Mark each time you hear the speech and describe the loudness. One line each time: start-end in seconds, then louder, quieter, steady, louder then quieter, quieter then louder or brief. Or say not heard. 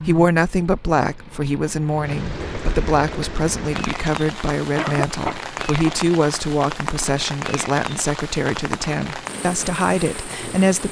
0.0-10.8 steady.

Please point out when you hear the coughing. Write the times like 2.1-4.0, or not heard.
4.8-6.0.